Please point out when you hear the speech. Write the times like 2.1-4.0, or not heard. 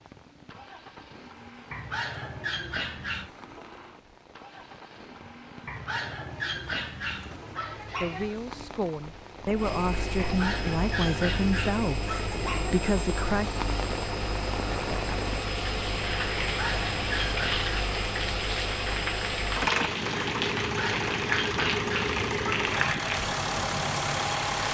8.0-13.5.